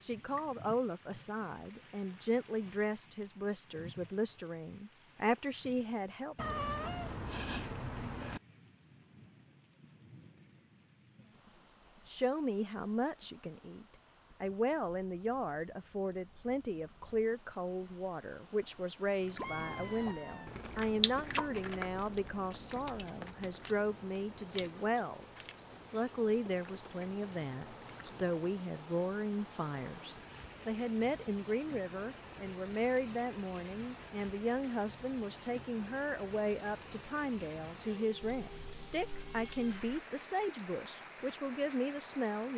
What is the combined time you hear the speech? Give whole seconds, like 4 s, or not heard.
37 s.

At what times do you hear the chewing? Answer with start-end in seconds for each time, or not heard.
19.2-28.4.